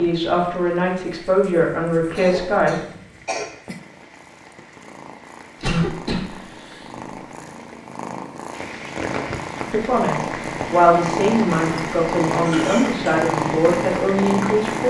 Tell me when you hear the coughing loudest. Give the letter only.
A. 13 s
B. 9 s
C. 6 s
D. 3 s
C.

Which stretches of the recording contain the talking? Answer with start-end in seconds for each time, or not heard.
0.0-2.8, 9.7-14.8.